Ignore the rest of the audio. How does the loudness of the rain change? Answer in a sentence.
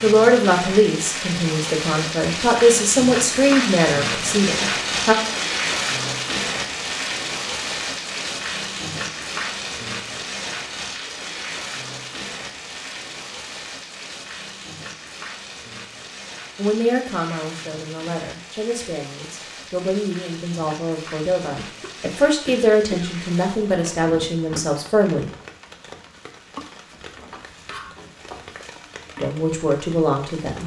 The volume of the rain goes down.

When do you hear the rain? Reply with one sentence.
You can hear the rain from 0.0 to 30.6 s.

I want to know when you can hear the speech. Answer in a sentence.
The speech can be heard from 0.0 to 5.2 s, from 16.6 to 25.3 s and from 29.1 to 30.6 s.